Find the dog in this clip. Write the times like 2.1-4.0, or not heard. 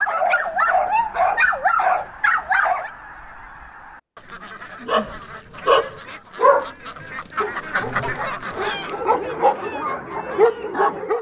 0.0-2.9, 4.8-6.7, 7.4-11.1.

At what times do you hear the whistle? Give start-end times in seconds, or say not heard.
not heard.